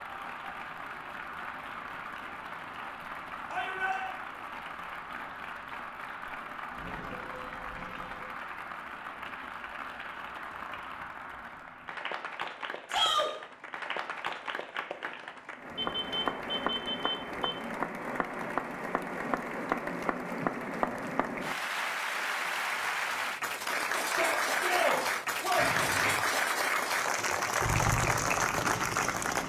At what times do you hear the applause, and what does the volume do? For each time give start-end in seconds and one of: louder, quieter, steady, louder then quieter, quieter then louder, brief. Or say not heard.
0.0-29.4 louder.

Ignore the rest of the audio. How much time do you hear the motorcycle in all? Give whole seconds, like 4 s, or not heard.
2 s.